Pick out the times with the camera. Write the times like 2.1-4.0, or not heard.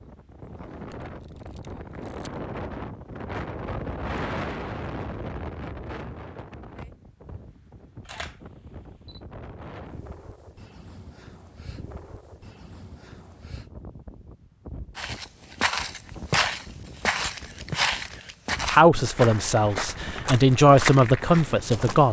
0.8-2.4, 8.0-9.2, 17.1-18.4.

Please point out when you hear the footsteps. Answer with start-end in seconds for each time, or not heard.
14.9-22.0.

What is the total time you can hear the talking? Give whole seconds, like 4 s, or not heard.
3 s.